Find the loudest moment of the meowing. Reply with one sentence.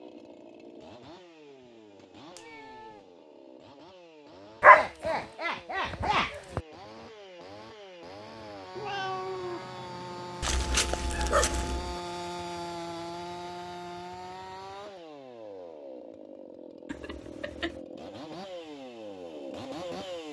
The volume of the meowing peaks at 9 seconds.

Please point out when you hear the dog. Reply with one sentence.
You can hear the dog from 4.6 to 6.6 s and from 10.4 to 12.0 s.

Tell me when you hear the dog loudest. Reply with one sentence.
The volume of the dog peaks at 5 seconds.